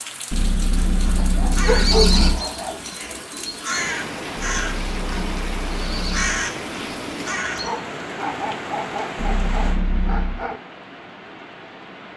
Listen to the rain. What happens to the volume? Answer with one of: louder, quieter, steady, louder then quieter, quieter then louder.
louder then quieter.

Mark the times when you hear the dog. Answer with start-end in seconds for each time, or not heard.
1.2-2.8, 7.6-10.6.